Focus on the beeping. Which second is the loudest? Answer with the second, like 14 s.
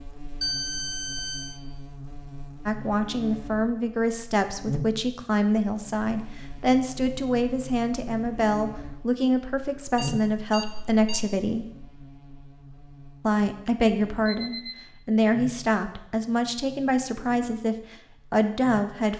1 s.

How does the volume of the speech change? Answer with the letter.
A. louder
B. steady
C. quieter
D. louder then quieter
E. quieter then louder
B.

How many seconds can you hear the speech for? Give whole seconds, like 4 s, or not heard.
15 s.